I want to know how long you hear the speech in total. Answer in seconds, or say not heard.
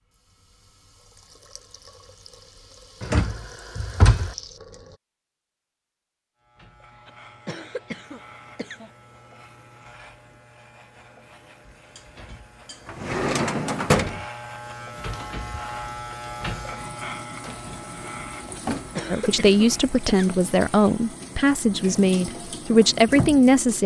5 s.